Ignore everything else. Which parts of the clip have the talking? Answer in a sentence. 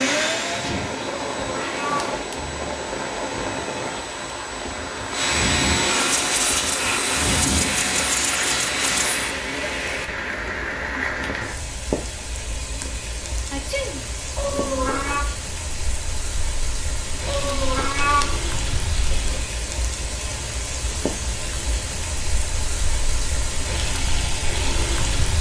You can't hear the talking here.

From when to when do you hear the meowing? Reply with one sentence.
You can hear the meowing from 1.1 to 2.4 s, from 14.3 to 15.2 s and from 17.2 to 18.3 s.